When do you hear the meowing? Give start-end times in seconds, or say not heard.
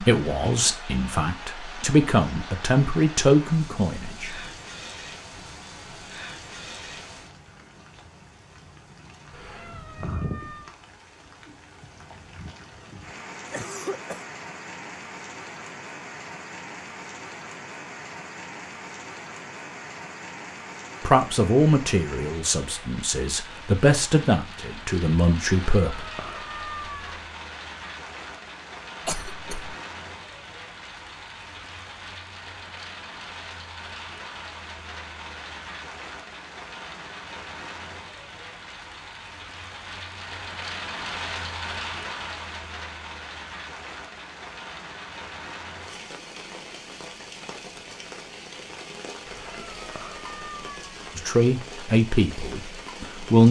9.3-10.7, 25.5-27.2, 49.2-51.1.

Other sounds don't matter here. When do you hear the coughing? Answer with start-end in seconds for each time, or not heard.
13.4-14.2, 29.1-29.8.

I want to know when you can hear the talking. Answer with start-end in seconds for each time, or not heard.
0.0-4.3, 21.1-26.1, 51.1-53.4.